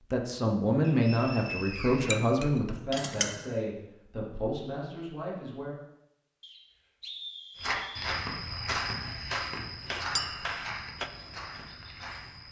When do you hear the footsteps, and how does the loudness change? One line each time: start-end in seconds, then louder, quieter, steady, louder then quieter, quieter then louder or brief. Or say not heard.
7.5-12.4 quieter.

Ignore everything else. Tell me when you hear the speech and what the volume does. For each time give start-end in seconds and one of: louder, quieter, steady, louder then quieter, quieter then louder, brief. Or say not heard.
0.1-5.8 quieter.